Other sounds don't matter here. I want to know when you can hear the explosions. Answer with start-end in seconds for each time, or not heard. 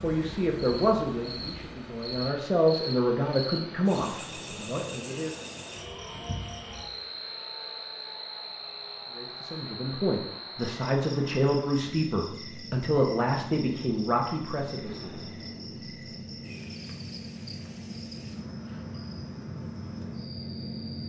14.8-15.9.